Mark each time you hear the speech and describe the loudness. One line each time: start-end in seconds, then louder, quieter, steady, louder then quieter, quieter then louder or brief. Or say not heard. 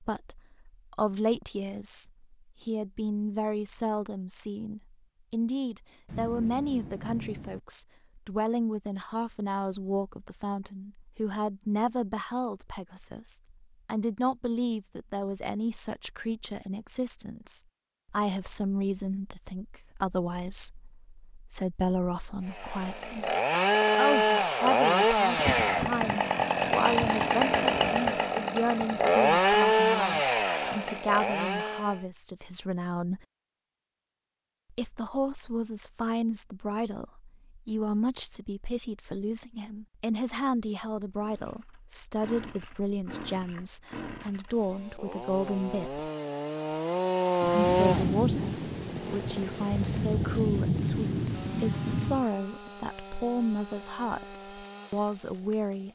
0.0-23.4 steady
23.9-33.2 steady
34.7-46.1 steady
47.5-55.8 steady.